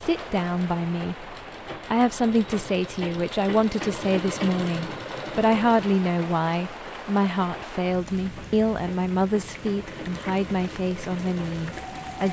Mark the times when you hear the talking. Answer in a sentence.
You can hear the talking from 0.0 to 12.2 s.